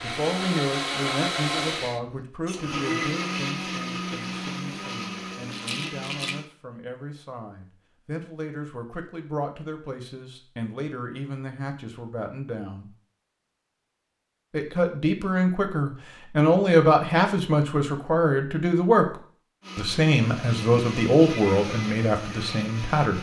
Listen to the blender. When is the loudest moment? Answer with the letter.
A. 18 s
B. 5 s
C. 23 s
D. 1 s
D.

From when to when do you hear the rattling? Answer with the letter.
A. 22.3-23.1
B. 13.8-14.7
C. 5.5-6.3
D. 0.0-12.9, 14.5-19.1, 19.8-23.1
C.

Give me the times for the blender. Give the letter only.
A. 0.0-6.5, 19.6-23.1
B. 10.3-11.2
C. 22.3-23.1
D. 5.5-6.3
A.